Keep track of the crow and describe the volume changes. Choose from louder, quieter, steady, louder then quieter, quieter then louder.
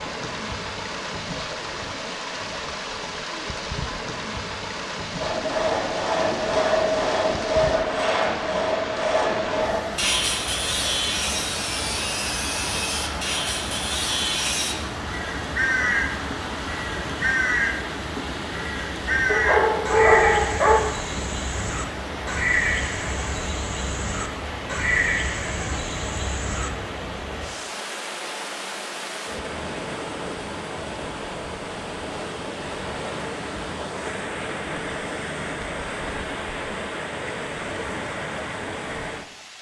steady.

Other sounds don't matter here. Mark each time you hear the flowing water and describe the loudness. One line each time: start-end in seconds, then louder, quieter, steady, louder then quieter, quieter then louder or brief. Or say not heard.
0.0-39.5 steady.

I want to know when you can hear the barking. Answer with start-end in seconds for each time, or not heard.
19.2-20.8.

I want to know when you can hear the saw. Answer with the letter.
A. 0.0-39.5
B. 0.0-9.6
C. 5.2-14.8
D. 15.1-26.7
C.